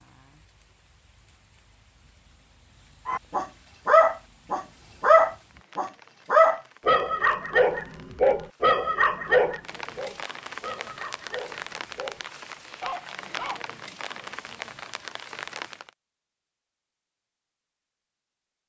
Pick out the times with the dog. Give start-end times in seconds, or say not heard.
3.0-14.3.